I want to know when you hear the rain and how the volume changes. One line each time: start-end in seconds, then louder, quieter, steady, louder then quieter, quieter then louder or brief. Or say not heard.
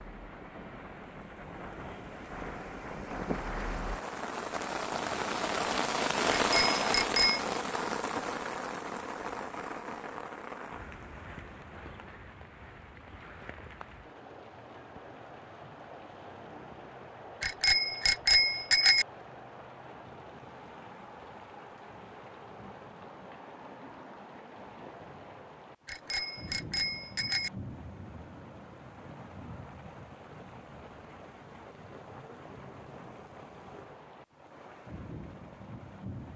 0.0-36.3 quieter.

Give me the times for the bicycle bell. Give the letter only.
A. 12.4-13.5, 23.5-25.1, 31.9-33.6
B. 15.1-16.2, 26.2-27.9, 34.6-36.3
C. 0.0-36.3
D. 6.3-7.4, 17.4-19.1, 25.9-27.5
D.